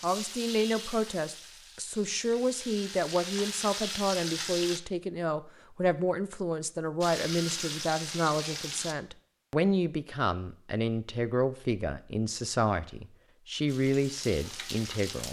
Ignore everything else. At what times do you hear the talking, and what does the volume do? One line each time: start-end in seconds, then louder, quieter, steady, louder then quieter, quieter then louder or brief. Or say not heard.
0.0-15.2 steady.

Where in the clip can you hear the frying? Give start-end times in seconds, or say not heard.
0.0-4.8, 7.0-8.9, 13.7-15.2.